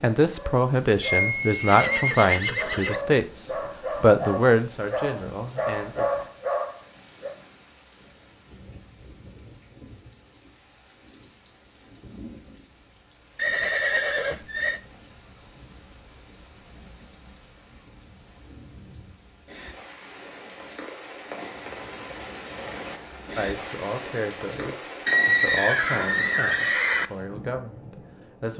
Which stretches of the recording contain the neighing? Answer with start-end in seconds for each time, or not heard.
1.0-3.0, 13.3-14.8, 25.1-27.1.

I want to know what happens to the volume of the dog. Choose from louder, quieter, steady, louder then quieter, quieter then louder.
louder.